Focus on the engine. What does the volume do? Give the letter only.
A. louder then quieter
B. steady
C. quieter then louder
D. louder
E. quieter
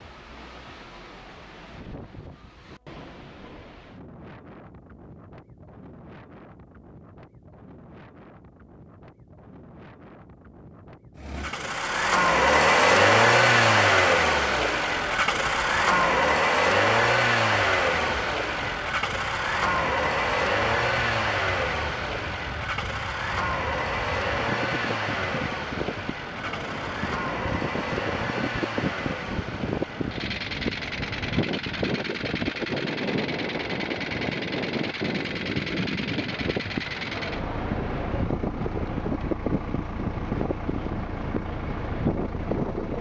E.